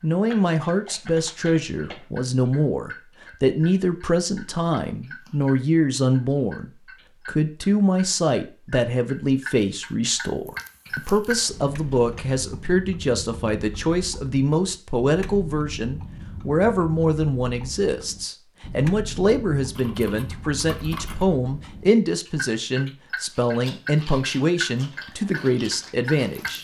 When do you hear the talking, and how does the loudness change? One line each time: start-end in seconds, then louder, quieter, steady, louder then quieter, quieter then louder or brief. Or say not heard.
0.0-26.5 steady.